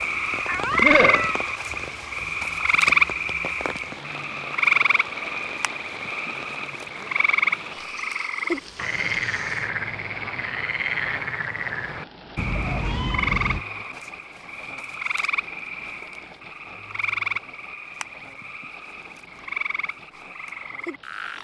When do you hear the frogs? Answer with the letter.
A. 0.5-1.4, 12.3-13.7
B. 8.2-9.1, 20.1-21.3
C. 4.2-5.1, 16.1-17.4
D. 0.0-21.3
D.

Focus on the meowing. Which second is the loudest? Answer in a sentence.
The volume of the meowing peaks at 1 second.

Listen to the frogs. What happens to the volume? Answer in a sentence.
The loudness of the frogs goes down.